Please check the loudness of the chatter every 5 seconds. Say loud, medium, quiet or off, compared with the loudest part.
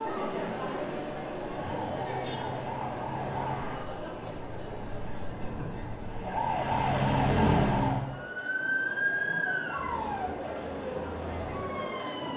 loud, medium, loud.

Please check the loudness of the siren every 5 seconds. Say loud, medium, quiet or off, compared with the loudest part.
medium, loud, medium.